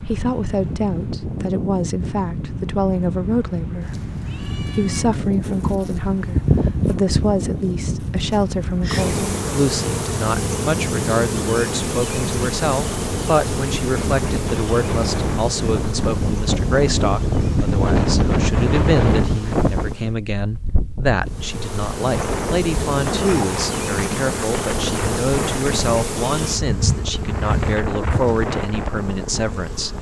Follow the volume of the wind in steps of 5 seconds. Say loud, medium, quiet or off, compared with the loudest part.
medium, medium, medium, loud, medium, medium.